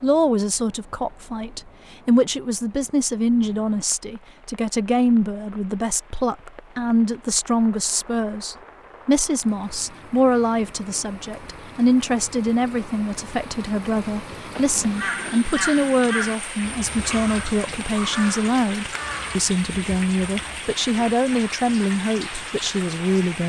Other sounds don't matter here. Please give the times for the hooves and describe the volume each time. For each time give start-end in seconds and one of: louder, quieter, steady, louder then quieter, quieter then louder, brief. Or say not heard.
not heard.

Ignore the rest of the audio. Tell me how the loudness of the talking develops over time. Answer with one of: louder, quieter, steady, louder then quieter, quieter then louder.
steady.